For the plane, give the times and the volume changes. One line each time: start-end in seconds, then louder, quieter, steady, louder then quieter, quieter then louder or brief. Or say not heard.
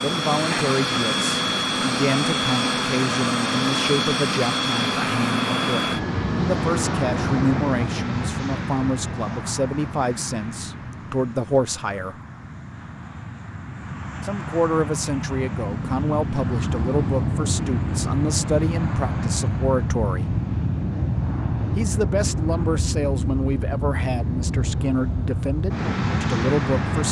0.0-27.0 quieter then louder.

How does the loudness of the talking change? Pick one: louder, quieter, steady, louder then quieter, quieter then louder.
steady.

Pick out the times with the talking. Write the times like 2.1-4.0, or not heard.
0.0-12.2, 14.2-20.3, 21.8-27.0.